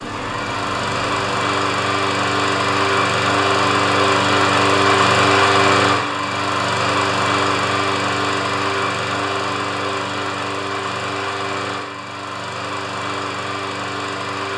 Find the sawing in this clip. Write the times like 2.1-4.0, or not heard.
not heard.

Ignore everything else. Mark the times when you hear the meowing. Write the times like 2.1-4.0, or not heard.
0.0-1.4.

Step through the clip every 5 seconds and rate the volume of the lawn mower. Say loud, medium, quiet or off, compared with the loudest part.
loud, loud, medium.